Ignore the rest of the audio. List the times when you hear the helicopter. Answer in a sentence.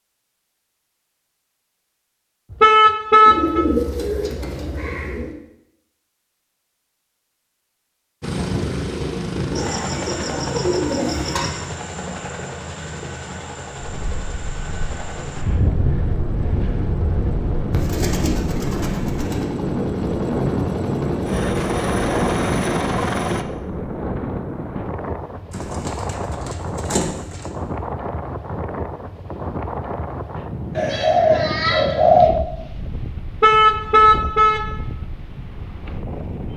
You can hear the helicopter from 8.2 to 23.4 s.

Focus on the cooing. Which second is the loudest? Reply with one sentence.
The loudest moment of the cooing is at 32 seconds.